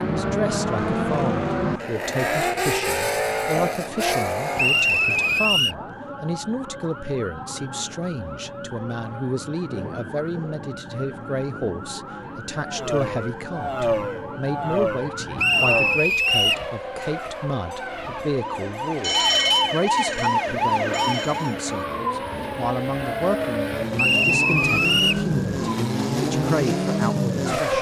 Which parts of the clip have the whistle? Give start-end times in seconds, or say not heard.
4.5-5.8, 15.3-16.6, 23.9-25.2.